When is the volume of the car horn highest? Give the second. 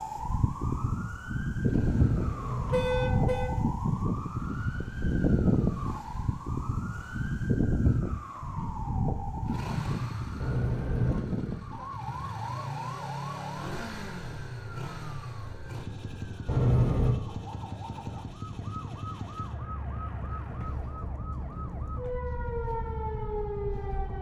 17 s.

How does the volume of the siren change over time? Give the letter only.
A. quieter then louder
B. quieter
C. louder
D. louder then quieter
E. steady
A.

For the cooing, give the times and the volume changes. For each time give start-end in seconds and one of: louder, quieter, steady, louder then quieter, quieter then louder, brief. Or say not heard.
not heard.